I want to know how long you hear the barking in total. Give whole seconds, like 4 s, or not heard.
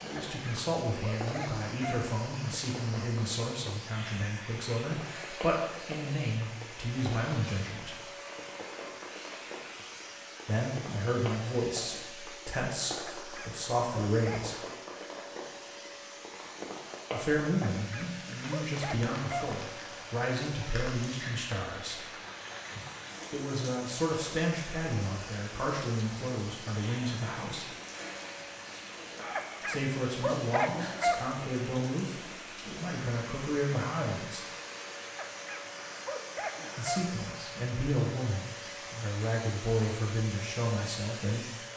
9 s.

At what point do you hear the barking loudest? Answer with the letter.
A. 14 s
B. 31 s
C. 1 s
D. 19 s
B.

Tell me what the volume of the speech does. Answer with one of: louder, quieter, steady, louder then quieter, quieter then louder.
steady.